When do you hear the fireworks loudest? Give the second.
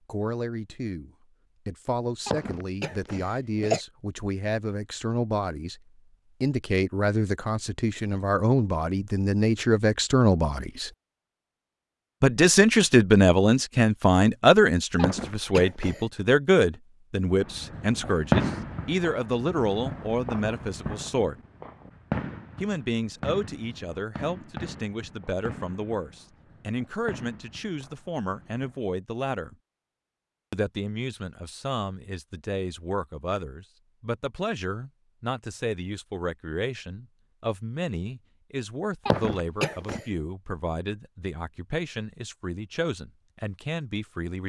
18 s.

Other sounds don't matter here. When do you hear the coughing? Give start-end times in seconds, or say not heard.
2.2-3.8, 14.9-16.1, 39.0-40.0.